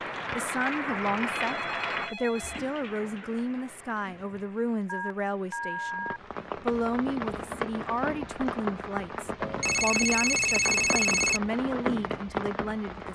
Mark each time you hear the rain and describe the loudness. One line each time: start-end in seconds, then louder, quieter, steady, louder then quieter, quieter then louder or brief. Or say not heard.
0.0-13.1 quieter then louder.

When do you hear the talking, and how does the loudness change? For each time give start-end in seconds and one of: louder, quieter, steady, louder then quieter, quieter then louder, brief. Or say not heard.
0.3-13.1 steady.